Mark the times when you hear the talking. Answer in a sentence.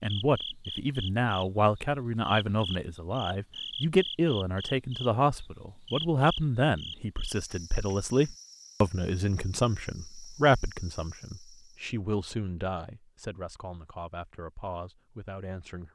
The talking can be heard from 0.0 to 15.9 s.